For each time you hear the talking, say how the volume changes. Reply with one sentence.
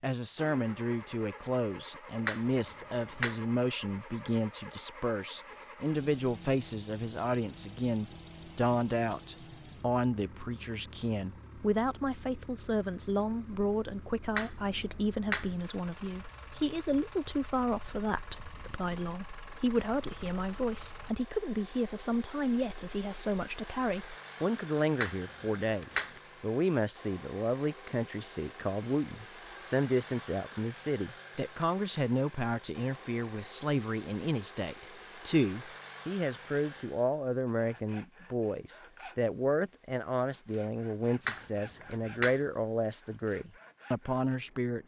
The talking can be heard from 0.0 to 44.8 s, at a steady volume.